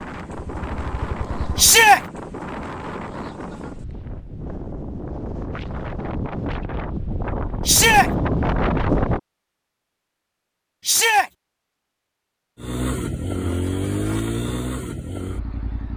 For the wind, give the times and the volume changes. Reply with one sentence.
The wind can be heard from 0.0 to 9.2 s, getting louder.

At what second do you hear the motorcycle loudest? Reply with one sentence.
The volume of the motorcycle peaks at 14 seconds.